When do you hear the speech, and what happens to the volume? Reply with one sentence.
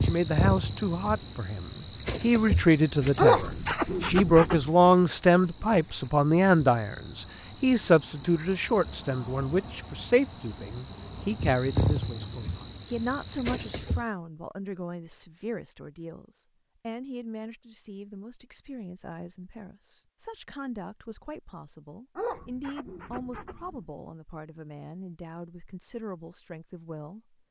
The speech can be heard from 0.0 to 27.4 s, getting quieter.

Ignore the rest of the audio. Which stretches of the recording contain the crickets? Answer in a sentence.
You can hear the crickets from 0.0 to 14.1 s.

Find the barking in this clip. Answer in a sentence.
The barking can be heard from 3.1 to 4.7 s and from 22.1 to 23.8 s.